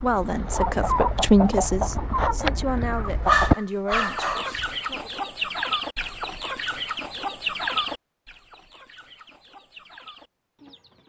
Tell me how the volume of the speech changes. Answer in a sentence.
The volume of the speech goes up, then down.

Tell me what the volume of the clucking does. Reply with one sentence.
The volume of the clucking goes down.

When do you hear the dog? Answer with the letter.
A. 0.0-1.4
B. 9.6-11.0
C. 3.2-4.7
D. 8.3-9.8
C.